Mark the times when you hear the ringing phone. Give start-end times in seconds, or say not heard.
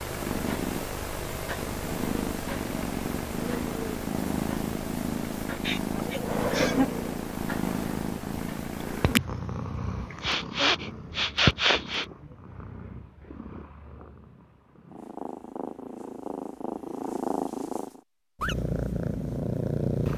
not heard.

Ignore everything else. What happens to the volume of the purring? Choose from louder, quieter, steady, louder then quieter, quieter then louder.
quieter then louder.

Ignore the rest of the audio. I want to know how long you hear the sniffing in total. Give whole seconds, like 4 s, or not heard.
3 s.